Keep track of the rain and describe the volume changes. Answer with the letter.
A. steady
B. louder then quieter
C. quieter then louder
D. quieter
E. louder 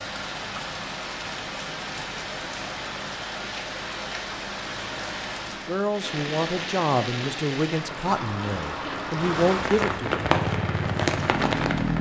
E.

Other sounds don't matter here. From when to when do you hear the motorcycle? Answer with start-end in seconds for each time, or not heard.
10.2-11.9.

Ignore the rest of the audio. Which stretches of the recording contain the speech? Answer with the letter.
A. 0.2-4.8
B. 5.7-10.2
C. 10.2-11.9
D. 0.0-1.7
B.